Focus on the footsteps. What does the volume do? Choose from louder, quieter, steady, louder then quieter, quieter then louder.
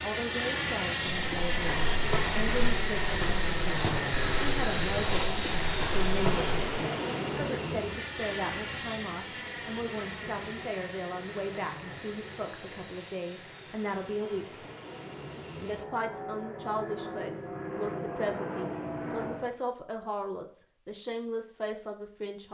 steady.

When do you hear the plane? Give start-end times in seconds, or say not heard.
0.0-19.6.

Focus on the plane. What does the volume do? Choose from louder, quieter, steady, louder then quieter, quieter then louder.
quieter then louder.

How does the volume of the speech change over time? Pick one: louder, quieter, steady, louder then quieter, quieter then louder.
steady.